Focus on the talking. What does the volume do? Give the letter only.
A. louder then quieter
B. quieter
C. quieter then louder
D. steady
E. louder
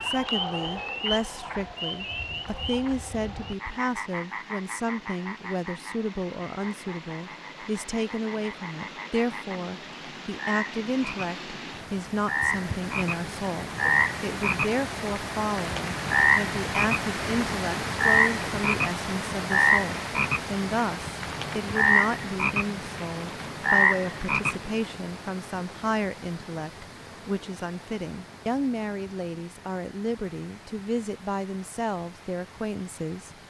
D.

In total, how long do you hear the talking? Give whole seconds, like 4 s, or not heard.
33 s.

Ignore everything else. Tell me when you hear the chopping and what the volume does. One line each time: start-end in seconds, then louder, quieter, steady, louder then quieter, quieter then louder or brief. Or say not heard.
not heard.